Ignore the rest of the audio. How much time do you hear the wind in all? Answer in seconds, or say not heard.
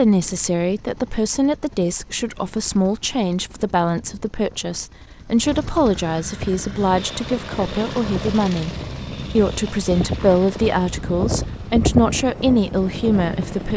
7 s.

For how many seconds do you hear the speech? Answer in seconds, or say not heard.
13 s.